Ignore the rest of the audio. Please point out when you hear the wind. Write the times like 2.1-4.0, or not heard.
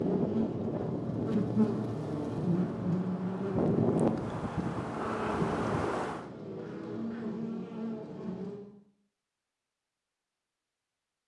0.0-6.3.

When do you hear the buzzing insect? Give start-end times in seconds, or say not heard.
0.0-8.7.